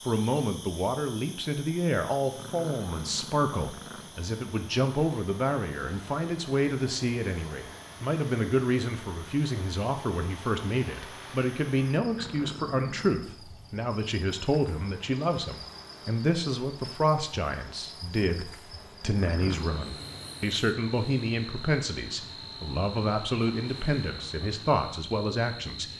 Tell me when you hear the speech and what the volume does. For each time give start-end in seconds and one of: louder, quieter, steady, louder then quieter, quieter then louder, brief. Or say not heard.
0.1-25.9 steady.